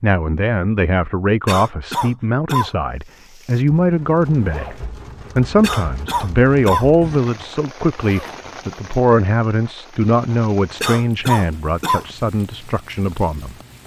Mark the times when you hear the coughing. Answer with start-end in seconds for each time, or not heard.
1.4-2.7, 5.6-6.9, 10.8-12.1.